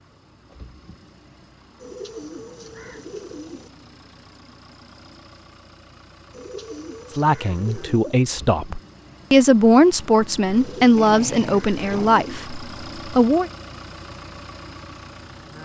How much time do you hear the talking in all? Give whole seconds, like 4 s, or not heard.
6 s.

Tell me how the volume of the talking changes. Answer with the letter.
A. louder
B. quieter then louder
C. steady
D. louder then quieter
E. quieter
D.